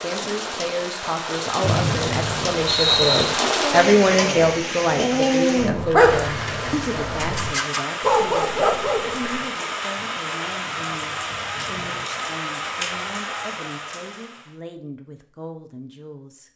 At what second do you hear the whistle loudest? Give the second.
3 s.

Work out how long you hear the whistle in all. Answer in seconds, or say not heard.
2 s.